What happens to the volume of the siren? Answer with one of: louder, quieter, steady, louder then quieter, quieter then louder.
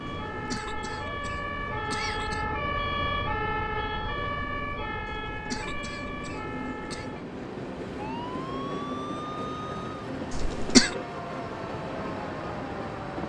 quieter.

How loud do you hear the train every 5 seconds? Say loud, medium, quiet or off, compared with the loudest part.
medium, loud, loud.